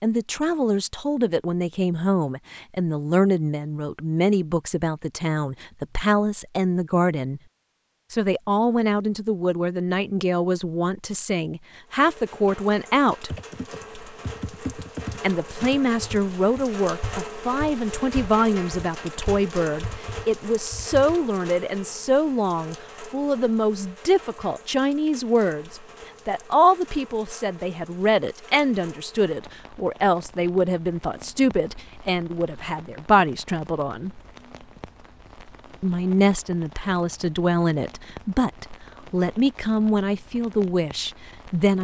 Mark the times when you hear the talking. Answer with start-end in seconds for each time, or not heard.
0.0-7.4, 8.1-13.3, 15.2-34.2, 35.8-41.7.